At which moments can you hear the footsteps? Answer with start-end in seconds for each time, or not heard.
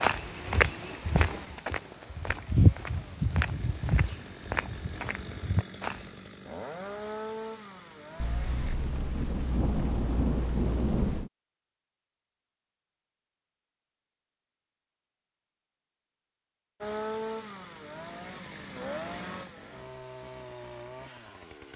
0.0-6.2.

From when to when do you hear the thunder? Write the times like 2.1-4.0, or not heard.
8.2-11.3.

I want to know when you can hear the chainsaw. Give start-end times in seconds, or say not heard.
0.1-8.8, 16.8-21.7.